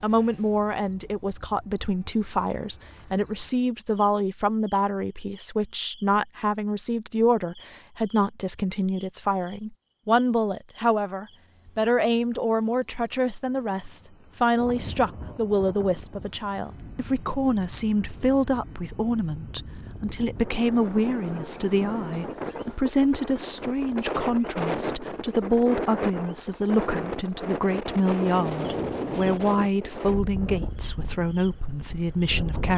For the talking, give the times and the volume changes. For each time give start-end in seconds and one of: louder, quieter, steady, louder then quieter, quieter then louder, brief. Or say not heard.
0.0-32.7 steady.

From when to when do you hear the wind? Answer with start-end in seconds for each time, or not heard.
14.6-32.7.